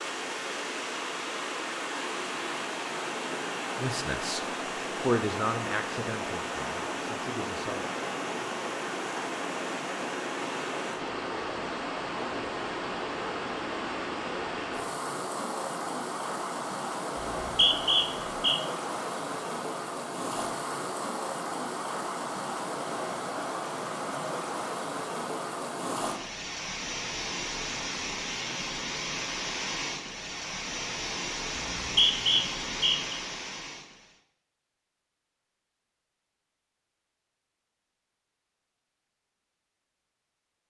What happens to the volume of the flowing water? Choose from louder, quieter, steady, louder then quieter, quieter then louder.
steady.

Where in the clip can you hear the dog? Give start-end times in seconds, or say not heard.
not heard.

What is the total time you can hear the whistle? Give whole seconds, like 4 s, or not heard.
3 s.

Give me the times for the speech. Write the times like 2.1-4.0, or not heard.
3.8-7.9.